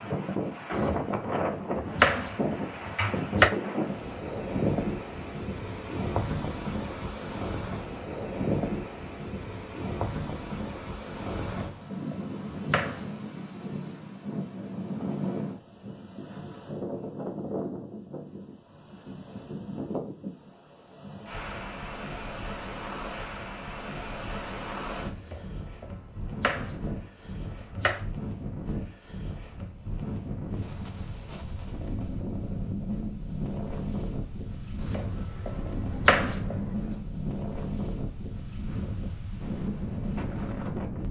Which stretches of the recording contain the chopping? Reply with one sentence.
You can hear the chopping from 0.8 to 3.5 s, from 11.6 to 13.1 s, from 25.1 to 28.1 s and from 34.8 to 37.0 s.